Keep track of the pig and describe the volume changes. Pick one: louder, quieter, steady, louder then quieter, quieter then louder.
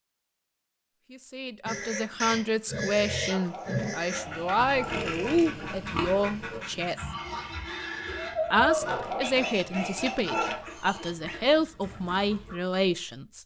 quieter.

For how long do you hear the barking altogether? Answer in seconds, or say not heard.
4 s.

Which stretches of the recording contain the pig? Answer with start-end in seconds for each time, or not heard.
1.6-11.3.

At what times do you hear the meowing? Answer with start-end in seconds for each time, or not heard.
8.1-9.2.